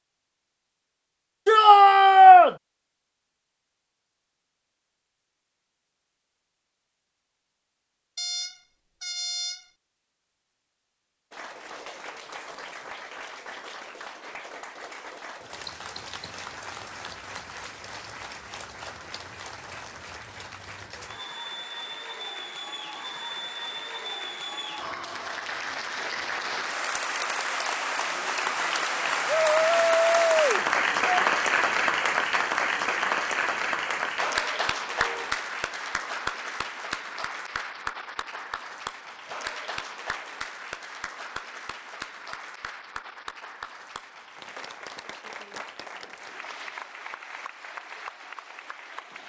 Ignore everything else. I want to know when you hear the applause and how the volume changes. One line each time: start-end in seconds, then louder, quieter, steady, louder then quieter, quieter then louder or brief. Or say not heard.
11.3-49.2 louder then quieter.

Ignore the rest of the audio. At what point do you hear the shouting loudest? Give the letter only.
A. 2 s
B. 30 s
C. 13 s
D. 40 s
A.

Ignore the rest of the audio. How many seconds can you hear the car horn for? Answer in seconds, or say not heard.
2 s.